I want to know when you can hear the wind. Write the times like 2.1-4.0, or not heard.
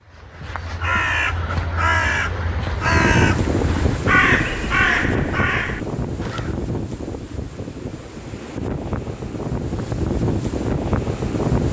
2.7-11.6.